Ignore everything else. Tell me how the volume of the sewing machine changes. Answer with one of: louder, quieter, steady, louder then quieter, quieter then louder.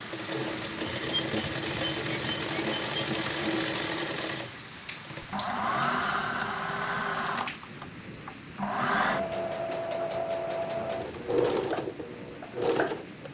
steady.